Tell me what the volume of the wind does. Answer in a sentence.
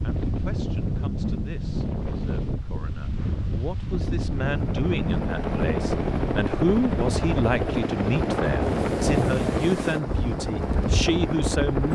The volume of the wind stays about the same.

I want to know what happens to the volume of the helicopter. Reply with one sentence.
The loudness of the helicopter stays about the same.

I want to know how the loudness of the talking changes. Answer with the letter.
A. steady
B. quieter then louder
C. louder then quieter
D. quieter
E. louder
E.